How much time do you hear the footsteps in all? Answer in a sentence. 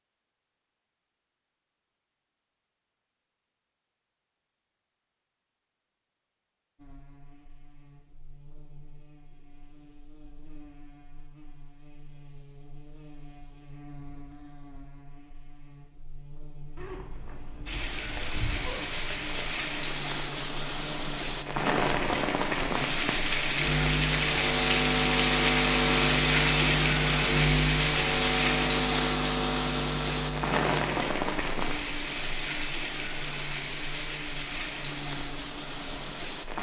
The footsteps can't be heard in this clip.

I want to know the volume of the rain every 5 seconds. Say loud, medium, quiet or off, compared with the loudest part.
off, off, off, medium, loud, loud, medium, medium.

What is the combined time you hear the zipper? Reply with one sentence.
You can hear the zipper for 3 seconds altogether.